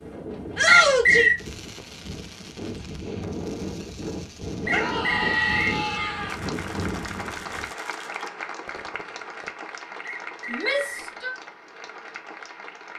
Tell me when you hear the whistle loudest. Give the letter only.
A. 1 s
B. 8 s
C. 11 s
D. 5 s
A.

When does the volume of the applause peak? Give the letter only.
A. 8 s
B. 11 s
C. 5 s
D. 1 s
A.